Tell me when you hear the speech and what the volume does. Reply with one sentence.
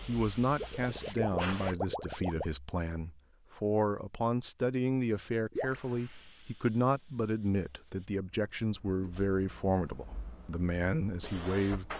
The speech can be heard from 0.1 to 11.9 s, at a steady volume.